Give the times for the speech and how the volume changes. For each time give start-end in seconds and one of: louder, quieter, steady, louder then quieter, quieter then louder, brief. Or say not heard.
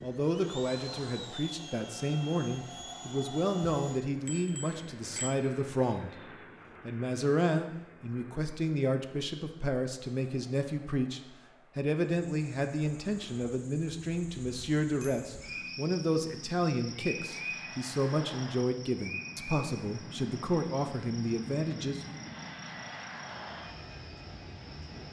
0.0-6.1 steady
6.8-22.0 steady.